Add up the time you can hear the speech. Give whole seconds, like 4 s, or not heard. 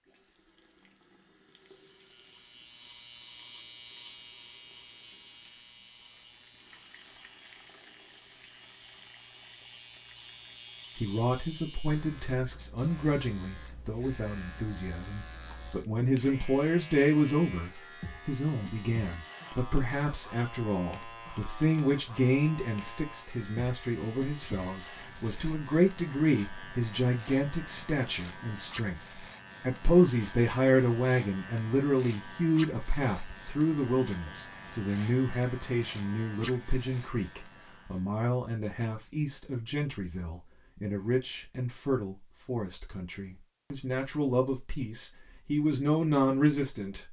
36 s.